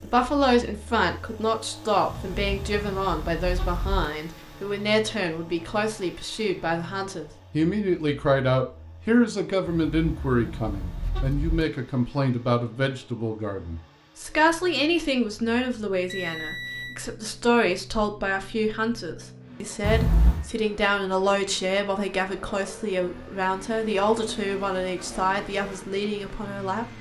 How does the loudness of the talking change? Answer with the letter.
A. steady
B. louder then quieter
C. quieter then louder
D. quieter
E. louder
A.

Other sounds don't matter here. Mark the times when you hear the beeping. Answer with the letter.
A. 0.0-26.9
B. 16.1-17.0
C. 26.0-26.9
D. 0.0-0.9
B.